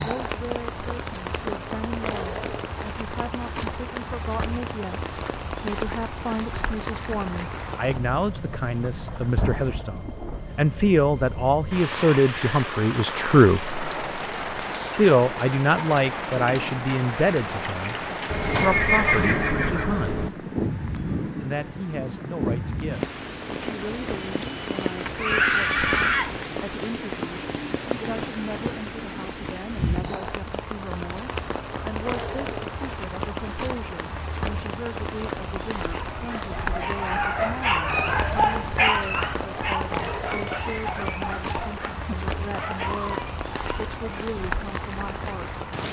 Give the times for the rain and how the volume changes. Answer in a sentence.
You can hear the rain from 0.0 to 45.8 s, at a steady volume.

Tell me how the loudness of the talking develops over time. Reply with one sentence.
The volume of the talking goes up, then down.